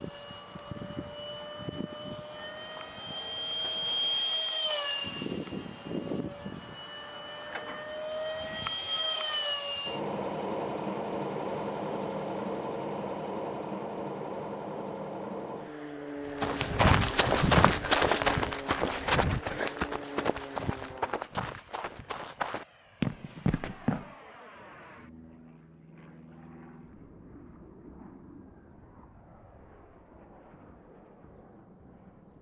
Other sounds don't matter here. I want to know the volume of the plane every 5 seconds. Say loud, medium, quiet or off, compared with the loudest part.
loud, loud, loud, medium, quiet, quiet, quiet.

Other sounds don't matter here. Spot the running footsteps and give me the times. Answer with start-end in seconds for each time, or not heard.
16.4-24.1.